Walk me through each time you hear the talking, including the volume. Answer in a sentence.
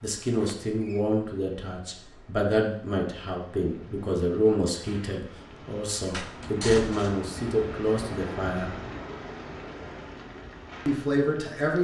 The talking can be heard from 0.0 to 8.8 s, at a steady volume; and briefly from 10.8 to 11.7 s.